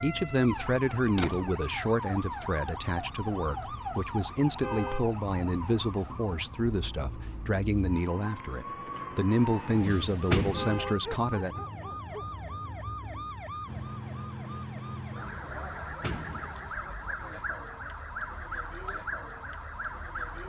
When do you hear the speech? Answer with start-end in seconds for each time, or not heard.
0.0-11.6.